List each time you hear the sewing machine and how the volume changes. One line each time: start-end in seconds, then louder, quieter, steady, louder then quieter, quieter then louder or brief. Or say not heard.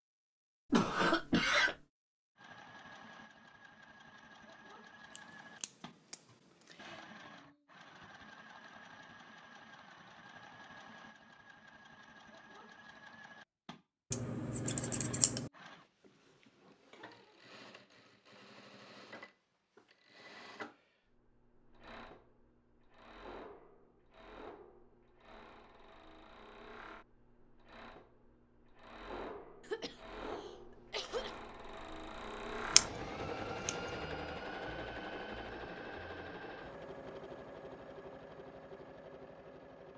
2.4-39.9 louder.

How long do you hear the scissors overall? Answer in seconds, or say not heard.
4 s.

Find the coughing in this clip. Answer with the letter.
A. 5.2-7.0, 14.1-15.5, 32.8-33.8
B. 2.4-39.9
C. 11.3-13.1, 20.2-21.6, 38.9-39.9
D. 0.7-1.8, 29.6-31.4
D.